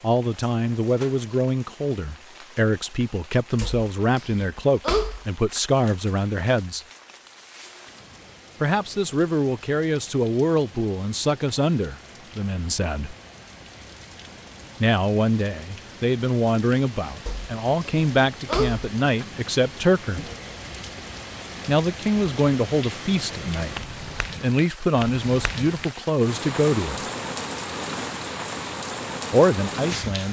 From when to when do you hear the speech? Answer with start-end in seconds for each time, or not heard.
0.0-6.8, 8.6-13.2, 14.8-20.2, 21.6-23.8, 24.4-27.1, 29.3-30.2.